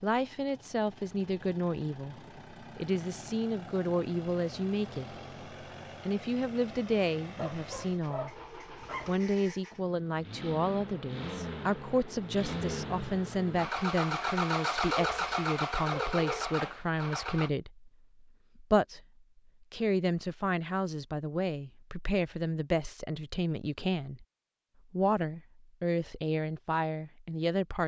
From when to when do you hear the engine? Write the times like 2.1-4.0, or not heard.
0.0-17.5.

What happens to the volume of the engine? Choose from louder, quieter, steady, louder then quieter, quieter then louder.
louder.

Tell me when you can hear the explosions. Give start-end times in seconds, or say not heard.
not heard.